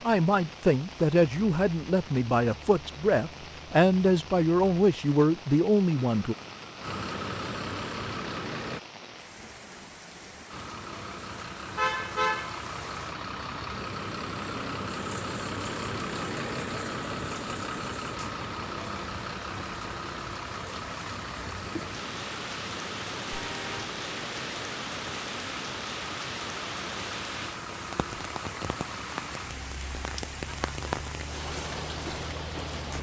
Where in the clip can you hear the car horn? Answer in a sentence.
The car horn can be heard from 11.8 to 12.6 s and from 23.3 to 23.9 s.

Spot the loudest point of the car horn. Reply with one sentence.
The loudest moment of the car horn is at 12 seconds.